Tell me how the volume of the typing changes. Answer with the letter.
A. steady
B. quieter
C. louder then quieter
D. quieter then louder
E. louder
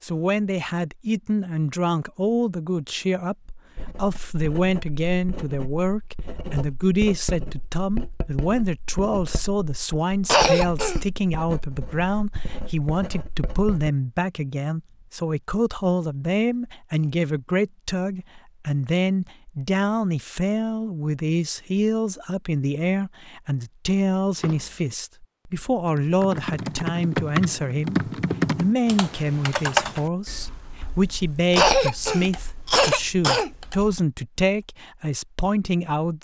B.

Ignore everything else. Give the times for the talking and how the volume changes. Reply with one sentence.
You can hear the talking from 0.0 to 36.2 s, at a steady volume.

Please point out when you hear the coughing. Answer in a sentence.
You can hear the coughing from 10.2 to 11.0 s and from 31.6 to 33.5 s.